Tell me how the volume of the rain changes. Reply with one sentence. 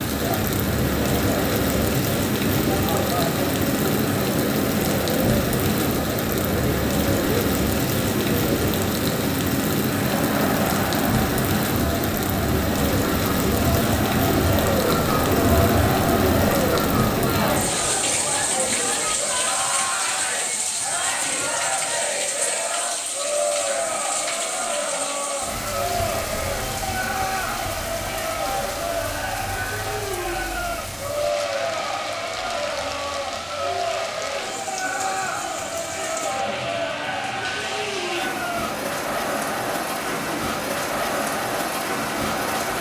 The volume of the rain goes down.